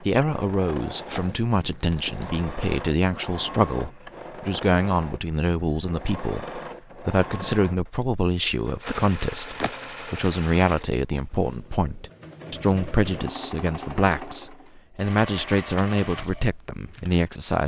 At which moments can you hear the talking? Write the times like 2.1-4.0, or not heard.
0.0-17.6.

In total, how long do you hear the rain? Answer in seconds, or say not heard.
not heard.